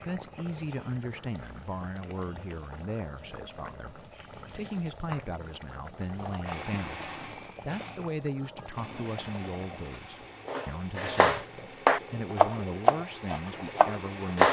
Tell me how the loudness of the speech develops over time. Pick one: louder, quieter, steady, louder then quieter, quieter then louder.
steady.